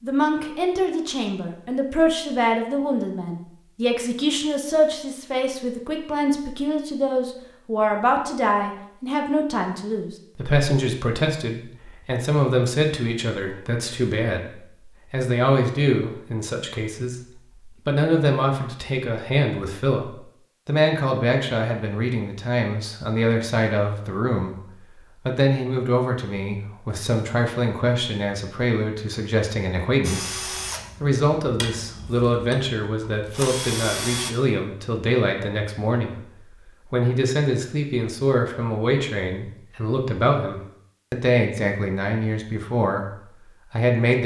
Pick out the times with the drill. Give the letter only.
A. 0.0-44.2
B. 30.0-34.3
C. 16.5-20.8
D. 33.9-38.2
B.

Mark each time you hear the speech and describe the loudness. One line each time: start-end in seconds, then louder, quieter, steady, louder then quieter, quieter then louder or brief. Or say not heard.
0.0-44.2 steady.